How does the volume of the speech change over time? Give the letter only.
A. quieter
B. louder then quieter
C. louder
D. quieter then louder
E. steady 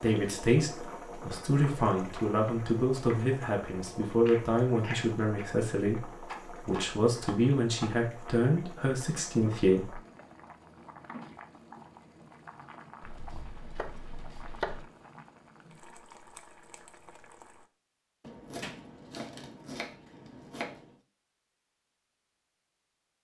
E.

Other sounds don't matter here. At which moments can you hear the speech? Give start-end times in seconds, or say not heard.
0.0-10.0.